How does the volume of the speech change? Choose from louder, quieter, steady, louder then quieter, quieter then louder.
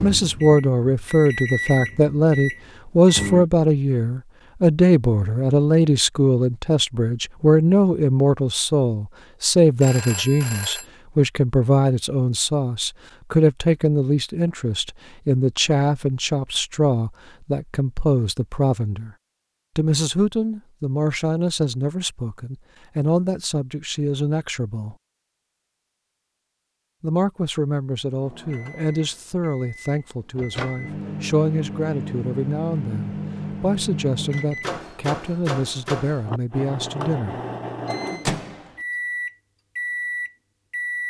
quieter.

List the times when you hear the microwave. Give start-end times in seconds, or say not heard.
0.0-3.5, 28.2-41.0.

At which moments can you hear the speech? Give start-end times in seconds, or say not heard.
0.0-19.1, 19.8-24.9, 27.0-37.4.